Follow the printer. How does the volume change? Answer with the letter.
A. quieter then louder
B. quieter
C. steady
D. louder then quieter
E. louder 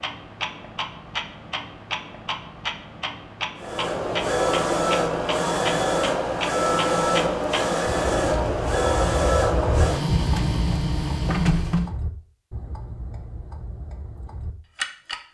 C.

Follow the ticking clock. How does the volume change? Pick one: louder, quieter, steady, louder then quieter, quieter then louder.
quieter.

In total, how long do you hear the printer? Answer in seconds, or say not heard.
8 s.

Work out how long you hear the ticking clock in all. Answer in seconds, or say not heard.
15 s.